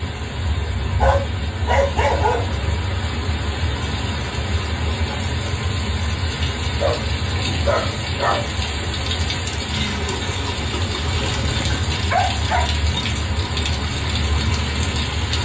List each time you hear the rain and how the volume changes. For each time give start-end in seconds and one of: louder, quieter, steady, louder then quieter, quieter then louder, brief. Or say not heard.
0.0-15.4 steady.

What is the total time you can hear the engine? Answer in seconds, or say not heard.
6 s.